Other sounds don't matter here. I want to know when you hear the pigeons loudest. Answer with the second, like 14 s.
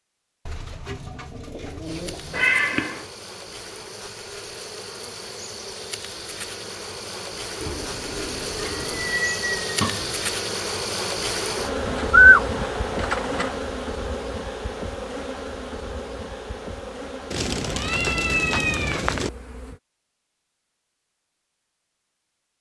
12 s.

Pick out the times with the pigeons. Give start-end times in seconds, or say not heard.
0.5-2.5, 7.6-9.2, 11.8-13.5, 17.3-19.3.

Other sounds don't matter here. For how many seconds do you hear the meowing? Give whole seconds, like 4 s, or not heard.
4 s.